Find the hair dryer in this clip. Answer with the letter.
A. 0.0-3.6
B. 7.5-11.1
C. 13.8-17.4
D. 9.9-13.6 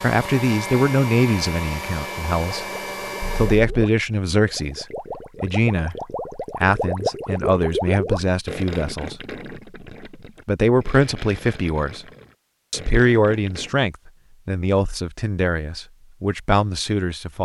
A.